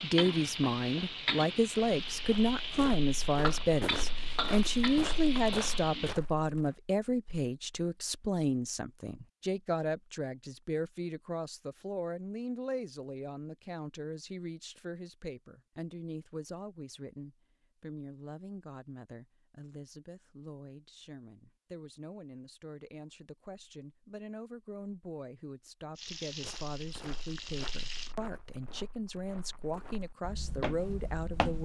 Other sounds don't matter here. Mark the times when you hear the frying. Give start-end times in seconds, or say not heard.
0.0-6.2, 25.9-28.1.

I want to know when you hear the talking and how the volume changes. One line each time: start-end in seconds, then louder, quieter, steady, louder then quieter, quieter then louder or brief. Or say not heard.
0.0-31.6 quieter then louder.